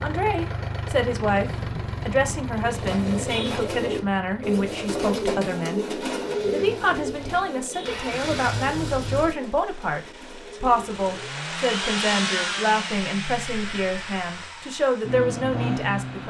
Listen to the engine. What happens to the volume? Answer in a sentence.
The volume of the engine goes down, then up.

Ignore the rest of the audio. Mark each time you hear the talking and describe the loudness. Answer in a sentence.
The talking can be heard from 0.0 to 16.2 s, at a steady volume.